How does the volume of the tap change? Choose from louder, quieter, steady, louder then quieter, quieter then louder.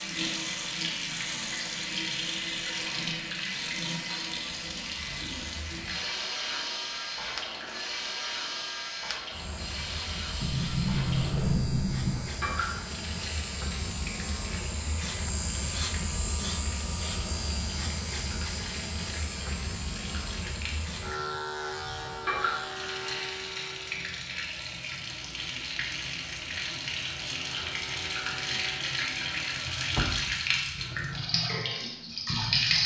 quieter then louder.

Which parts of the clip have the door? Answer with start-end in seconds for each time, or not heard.
10.4-12.2, 29.9-30.7.